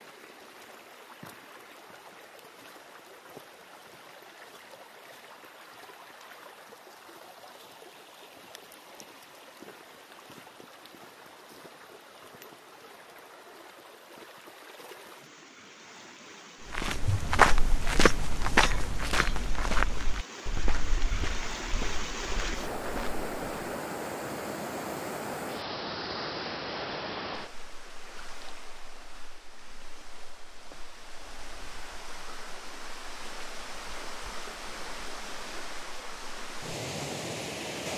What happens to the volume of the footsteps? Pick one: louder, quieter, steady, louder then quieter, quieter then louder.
quieter.